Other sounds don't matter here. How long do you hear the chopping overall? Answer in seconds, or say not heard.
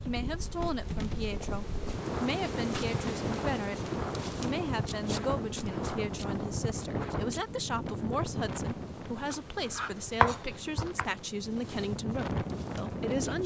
2 s.